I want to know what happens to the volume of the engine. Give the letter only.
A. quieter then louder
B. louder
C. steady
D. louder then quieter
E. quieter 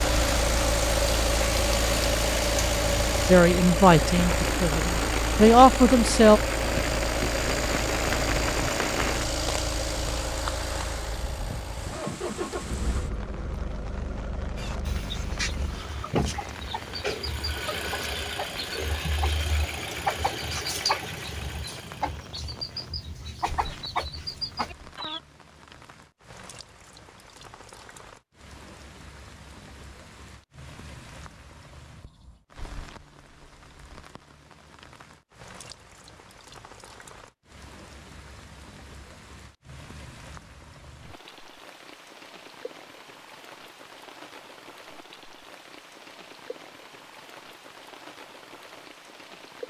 E.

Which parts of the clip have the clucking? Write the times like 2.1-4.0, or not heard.
14.6-25.2.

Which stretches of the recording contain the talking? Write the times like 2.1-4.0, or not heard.
3.2-6.4.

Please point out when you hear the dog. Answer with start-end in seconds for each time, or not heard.
not heard.